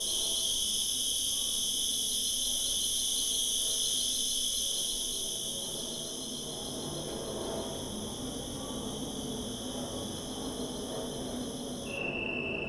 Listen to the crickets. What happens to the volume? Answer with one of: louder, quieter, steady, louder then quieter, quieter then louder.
quieter.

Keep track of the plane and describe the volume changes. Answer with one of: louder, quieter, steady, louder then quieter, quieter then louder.
louder.